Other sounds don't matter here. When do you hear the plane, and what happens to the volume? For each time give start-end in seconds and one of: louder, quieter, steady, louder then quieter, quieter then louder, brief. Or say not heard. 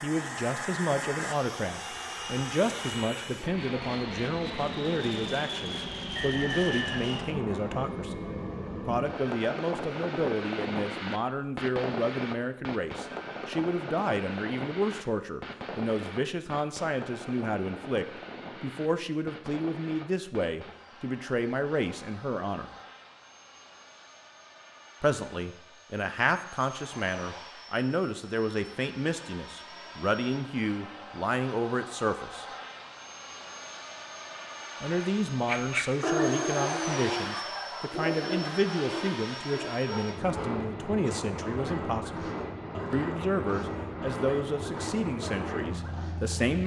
0.0-46.6 quieter then louder.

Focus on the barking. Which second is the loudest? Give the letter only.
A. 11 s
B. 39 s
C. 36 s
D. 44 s
C.